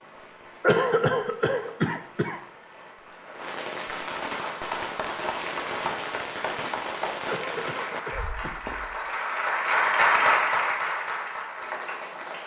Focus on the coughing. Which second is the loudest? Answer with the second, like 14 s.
1 s.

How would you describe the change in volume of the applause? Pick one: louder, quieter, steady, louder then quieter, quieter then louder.
louder then quieter.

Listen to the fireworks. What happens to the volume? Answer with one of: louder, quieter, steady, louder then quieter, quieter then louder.
louder.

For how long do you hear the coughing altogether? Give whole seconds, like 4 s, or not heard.
3 s.